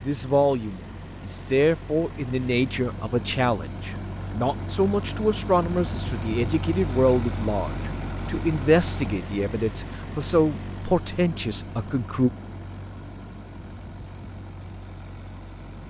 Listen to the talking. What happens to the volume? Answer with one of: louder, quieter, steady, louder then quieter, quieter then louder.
steady.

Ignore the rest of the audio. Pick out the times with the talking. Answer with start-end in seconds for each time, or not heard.
0.0-12.3.